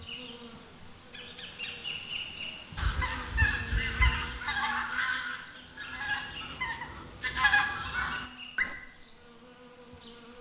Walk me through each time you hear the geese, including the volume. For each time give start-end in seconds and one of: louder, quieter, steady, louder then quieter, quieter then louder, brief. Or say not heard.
2.8-8.8 quieter then louder.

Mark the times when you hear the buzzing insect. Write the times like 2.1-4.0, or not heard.
0.0-10.3.